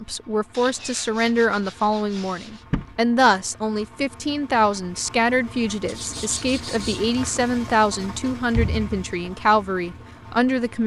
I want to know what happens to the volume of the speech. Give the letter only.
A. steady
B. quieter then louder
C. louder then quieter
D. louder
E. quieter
A.